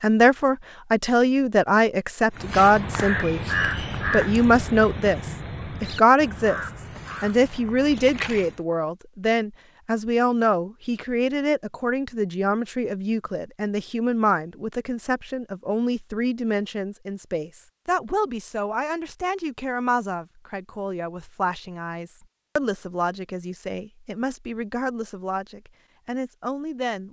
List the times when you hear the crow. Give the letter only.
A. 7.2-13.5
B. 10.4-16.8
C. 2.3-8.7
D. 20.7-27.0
C.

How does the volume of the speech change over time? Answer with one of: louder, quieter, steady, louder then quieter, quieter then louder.
quieter.